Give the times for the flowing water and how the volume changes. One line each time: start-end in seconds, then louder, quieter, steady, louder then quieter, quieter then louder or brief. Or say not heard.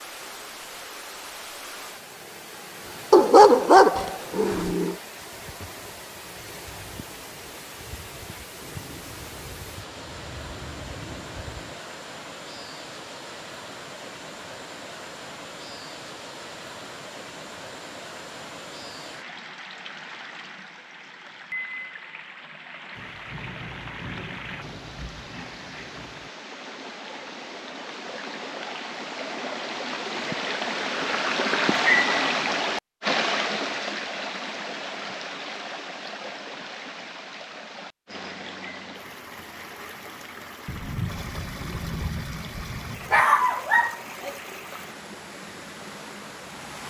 0.0-46.8 louder then quieter.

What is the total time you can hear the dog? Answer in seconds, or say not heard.
3 s.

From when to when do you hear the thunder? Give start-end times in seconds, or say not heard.
8.6-11.8, 22.9-26.3, 40.6-43.2.